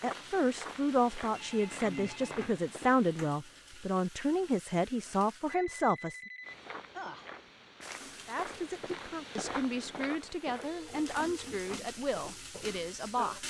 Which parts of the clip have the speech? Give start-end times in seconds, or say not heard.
0.0-6.2, 8.2-13.4.